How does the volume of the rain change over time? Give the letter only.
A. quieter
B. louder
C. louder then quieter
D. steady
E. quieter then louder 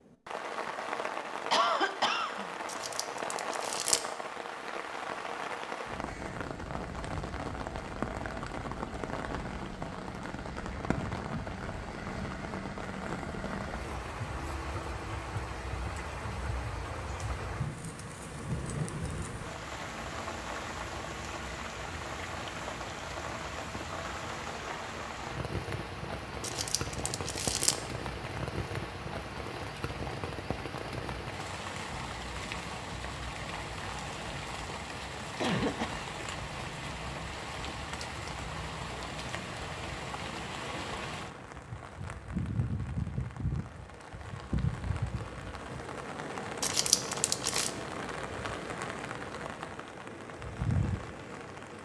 D.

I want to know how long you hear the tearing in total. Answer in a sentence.
The tearing can be heard for 4 seconds in total.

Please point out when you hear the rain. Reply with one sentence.
The rain can be heard from 0.0 to 51.8 s.